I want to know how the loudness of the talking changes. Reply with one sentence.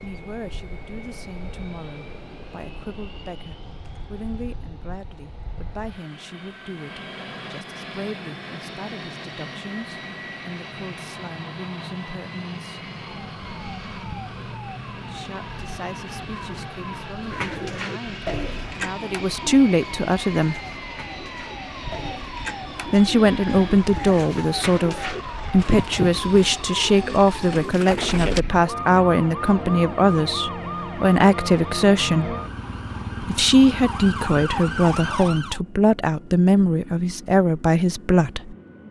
The volume of the talking goes up.